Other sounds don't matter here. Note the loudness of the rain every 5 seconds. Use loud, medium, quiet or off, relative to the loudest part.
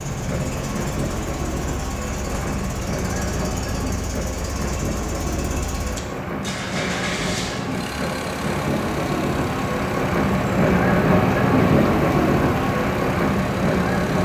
medium, medium, loud.